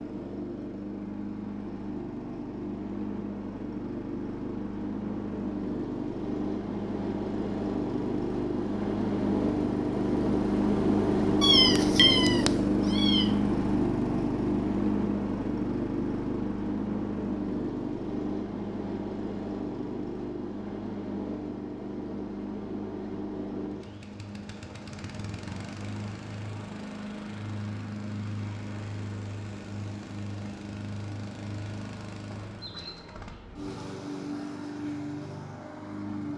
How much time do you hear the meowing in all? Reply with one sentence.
The meowing can be heard for 2 seconds in total.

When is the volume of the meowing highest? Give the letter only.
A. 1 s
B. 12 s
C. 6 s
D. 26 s
B.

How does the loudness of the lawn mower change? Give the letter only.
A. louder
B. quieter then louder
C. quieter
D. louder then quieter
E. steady
D.